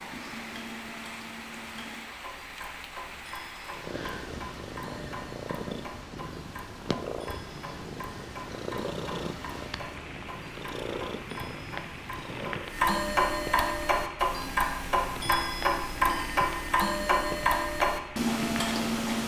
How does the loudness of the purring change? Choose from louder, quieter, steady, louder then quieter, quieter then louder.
steady.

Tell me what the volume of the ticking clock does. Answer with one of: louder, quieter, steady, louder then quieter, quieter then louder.
louder.